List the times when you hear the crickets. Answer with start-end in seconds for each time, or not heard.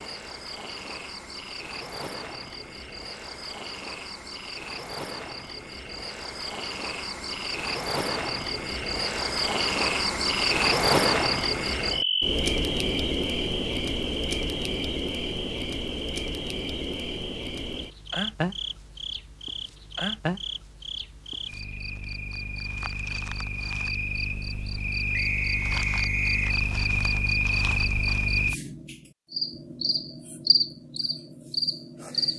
0.0-32.3.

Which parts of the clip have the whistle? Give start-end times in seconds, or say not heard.
25.1-26.6.